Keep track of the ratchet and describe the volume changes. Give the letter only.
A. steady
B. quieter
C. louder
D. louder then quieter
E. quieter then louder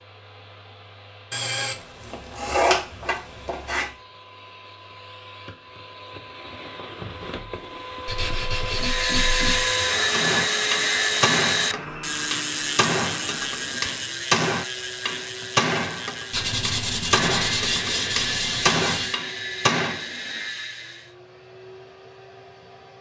B.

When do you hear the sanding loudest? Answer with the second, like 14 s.
3 s.